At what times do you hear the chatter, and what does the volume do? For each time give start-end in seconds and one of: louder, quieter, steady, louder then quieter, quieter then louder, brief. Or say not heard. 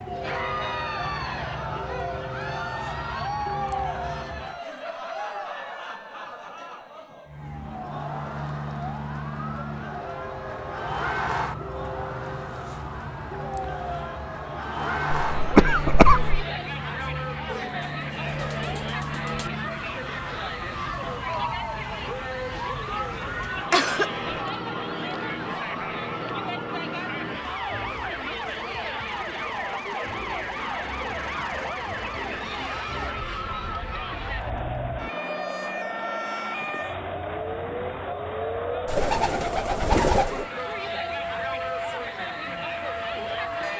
0.1-43.7 steady.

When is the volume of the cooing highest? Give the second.
40 s.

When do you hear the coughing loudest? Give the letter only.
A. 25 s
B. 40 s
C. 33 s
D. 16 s
D.